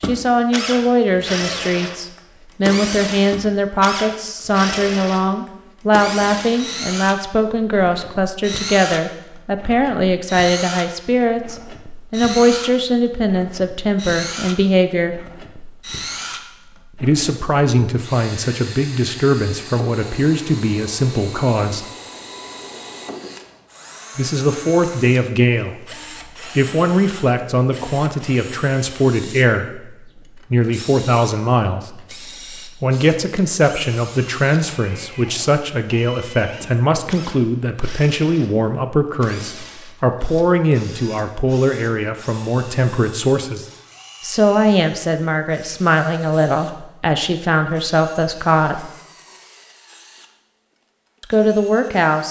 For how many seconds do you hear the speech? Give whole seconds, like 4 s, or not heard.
46 s.